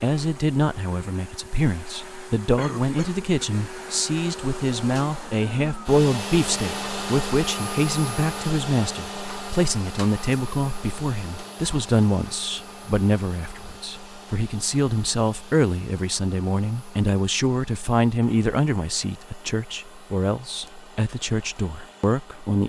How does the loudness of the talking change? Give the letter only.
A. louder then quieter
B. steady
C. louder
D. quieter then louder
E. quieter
B.